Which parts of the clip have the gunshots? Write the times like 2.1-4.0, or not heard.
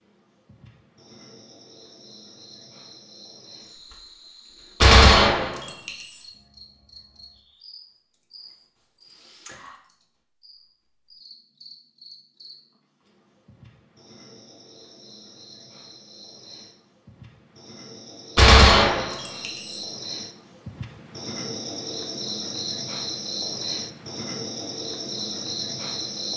4.8-6.3, 18.4-19.9.